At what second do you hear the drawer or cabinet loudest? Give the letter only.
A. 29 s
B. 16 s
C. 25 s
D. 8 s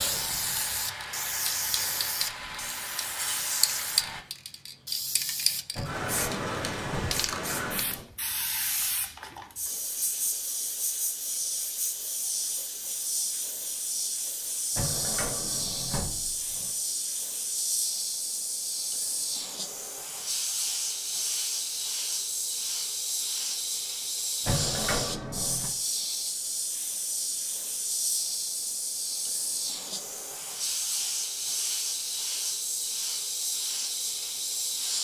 C.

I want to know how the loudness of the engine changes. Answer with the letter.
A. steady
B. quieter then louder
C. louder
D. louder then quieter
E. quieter
A.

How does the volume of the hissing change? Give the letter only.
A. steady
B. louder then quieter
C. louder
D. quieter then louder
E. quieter
A.